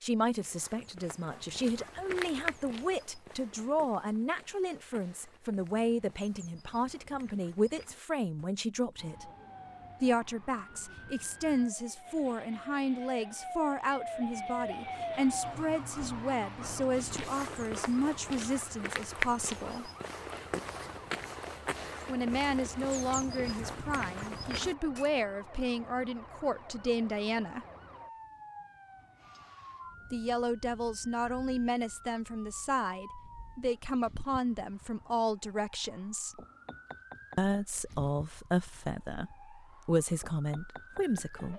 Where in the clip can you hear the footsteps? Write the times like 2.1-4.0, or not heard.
0.3-8.5, 16.9-25.1.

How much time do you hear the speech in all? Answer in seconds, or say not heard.
35 s.